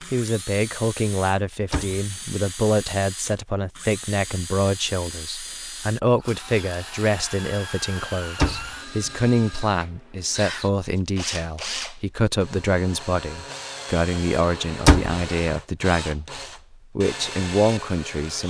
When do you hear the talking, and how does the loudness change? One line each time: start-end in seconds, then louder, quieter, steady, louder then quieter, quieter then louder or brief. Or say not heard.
0.0-18.4 steady.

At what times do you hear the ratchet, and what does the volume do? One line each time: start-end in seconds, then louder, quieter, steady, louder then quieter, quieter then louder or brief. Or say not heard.
not heard.